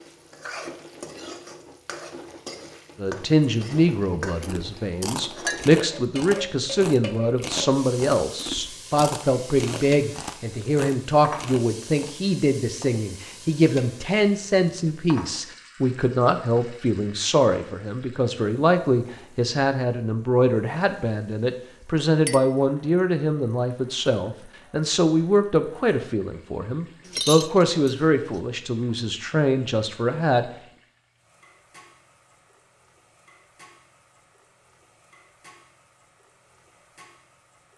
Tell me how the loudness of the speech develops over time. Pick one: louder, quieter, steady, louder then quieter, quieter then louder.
steady.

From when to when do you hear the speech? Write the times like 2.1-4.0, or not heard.
3.0-30.4.